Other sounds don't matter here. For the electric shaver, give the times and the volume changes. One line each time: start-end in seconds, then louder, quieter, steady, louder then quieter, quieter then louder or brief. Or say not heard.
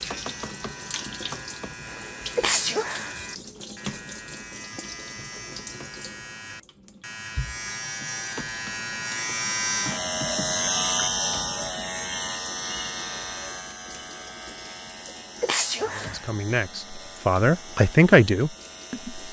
0.0-19.2 louder then quieter.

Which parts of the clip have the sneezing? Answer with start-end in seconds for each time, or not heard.
2.4-3.2, 15.4-16.3.